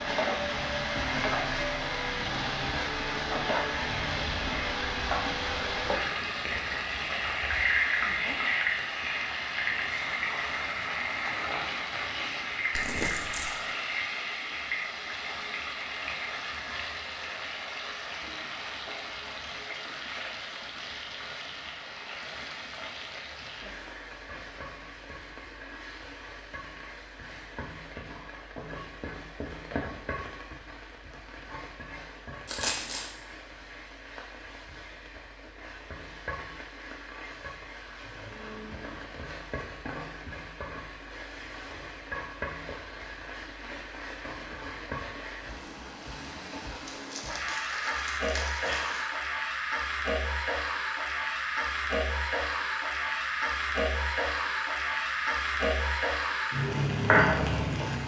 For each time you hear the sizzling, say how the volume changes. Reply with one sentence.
The sizzling can be heard from 0.0 to 58.0 s, getting quieter then louder.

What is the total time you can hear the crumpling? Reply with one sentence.
The crumpling can be heard for 4 seconds in total.